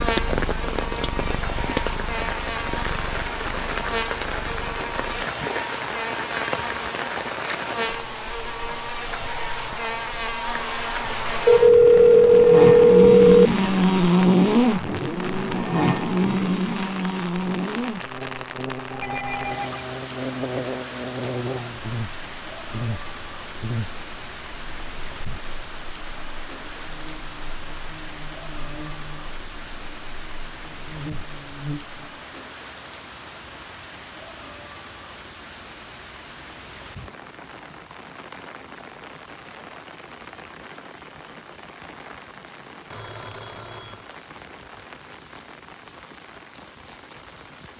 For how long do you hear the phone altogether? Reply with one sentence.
You can hear the phone for 4 seconds altogether.